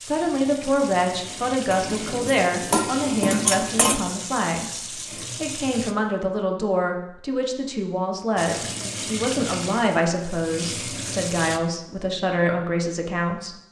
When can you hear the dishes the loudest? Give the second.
3 s.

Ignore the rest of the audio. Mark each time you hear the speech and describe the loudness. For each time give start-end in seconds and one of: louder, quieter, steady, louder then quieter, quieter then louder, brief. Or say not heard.
0.0-13.6 steady.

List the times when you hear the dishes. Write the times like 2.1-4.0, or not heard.
1.7-4.0.